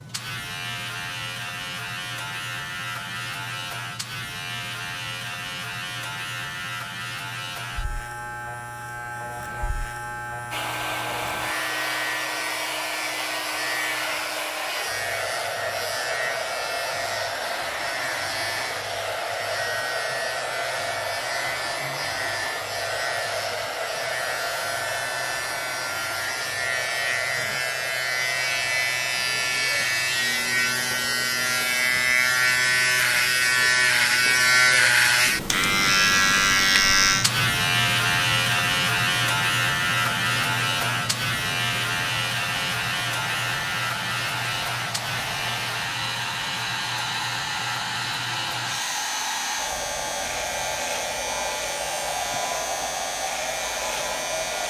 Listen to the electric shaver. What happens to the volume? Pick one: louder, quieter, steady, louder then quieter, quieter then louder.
louder then quieter.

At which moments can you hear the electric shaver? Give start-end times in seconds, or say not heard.
0.0-54.6.